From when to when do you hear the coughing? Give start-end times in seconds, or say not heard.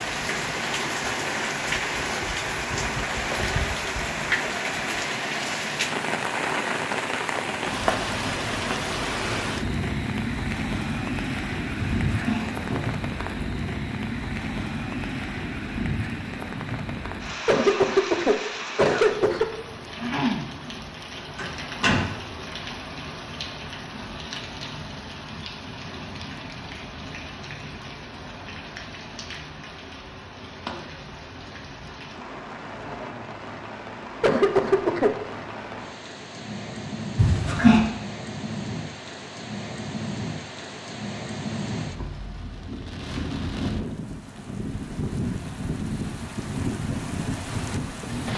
17.4-19.4, 34.2-35.1.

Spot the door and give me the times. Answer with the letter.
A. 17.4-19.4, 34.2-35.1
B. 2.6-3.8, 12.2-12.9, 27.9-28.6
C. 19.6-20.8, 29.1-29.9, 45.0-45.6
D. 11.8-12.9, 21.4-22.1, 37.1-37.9
D.